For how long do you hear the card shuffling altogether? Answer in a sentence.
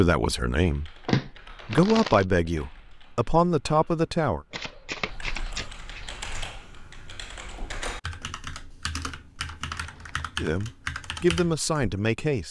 The card shuffling can be heard for 4 seconds in total.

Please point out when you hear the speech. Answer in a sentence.
The speech can be heard from 0.0 to 4.4 s and from 10.4 to 12.4 s.